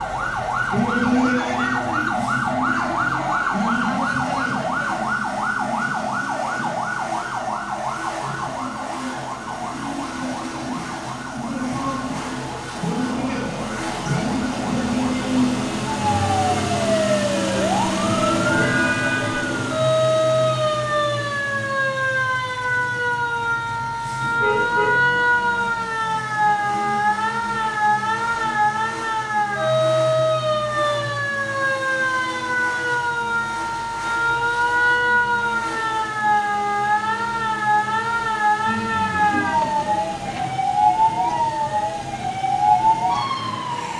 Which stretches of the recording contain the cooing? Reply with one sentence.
You can't hear the cooing here.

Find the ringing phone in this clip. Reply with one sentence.
You can hear the ringing phone from 38.6 to 40.6 s.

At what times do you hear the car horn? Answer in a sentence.
You can hear the car horn from 18.6 to 19.4 s and from 24.4 to 25.0 s.